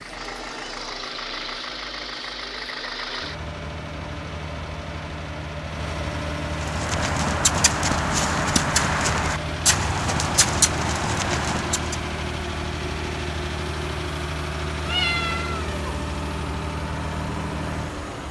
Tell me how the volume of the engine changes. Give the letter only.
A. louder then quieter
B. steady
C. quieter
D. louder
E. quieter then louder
B.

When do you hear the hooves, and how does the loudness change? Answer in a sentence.
You can hear the hooves from 6.5 to 11.9 s, at a steady volume.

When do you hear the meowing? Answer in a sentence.
The meowing can be heard from 14.8 to 15.9 s.